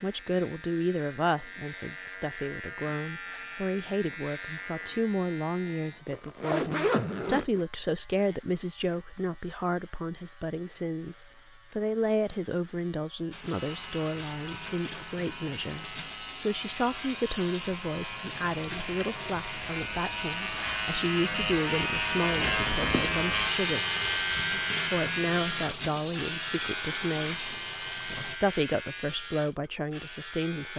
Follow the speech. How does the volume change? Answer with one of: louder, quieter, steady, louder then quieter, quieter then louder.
steady.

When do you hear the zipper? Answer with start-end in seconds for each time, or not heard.
6.0-7.7, 22.1-23.1.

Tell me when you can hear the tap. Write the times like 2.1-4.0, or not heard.
13.3-28.4.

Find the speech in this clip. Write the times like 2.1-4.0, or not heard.
0.0-23.8, 24.8-30.7.